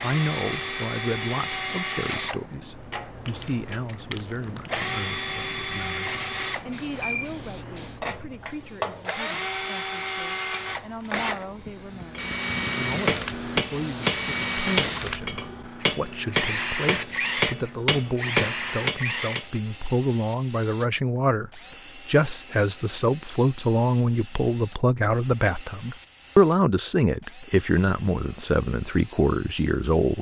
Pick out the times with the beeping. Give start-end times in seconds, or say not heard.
6.5-7.3.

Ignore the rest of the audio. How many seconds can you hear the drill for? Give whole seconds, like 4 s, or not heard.
30 s.